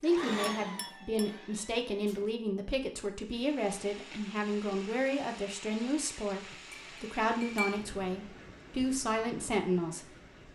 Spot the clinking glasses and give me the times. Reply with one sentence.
The clinking glasses can be heard from 0.6 to 1.4 s and from 6.5 to 7.8 s.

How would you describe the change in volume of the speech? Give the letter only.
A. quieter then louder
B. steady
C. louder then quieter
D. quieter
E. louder
B.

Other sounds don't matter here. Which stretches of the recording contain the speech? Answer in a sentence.
You can hear the speech from 0.0 to 10.5 s.